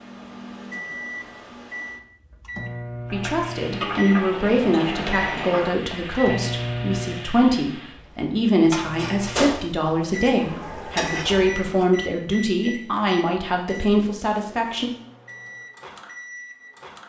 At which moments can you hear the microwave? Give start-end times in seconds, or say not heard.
0.0-7.3, 8.8-17.0.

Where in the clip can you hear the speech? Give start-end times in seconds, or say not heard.
3.1-14.9.